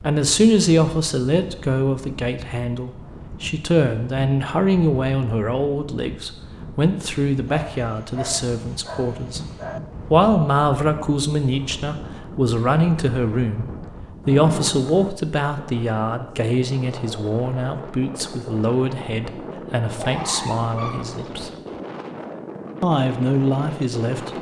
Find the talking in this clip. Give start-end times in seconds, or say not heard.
0.0-9.4, 10.1-21.5, 22.8-24.3.